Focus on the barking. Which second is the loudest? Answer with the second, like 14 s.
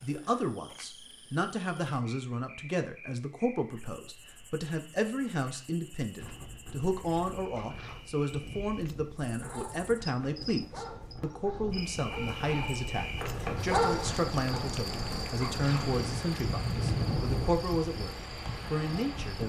14 s.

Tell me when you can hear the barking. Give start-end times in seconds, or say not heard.
9.3-14.6.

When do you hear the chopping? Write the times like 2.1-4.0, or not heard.
not heard.